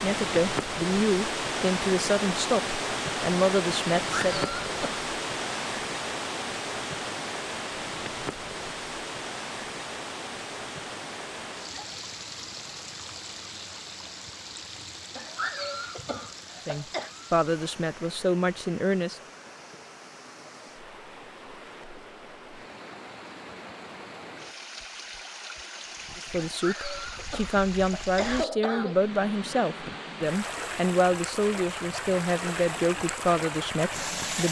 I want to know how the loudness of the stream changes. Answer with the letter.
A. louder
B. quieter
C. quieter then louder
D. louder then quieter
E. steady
C.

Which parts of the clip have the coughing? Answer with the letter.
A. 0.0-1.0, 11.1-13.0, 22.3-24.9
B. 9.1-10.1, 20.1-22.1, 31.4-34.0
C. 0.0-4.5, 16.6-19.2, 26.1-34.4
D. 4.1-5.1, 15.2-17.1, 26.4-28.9
D.